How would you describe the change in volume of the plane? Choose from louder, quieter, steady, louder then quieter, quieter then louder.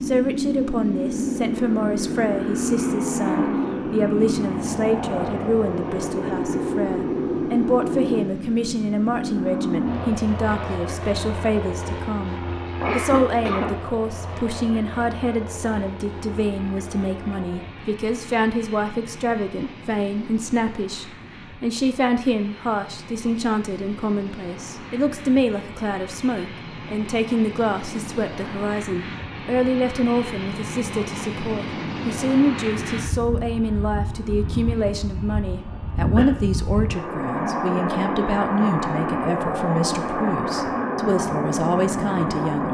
quieter then louder.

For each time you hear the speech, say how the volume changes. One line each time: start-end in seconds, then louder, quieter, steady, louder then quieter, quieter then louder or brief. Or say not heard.
0.0-42.6 steady.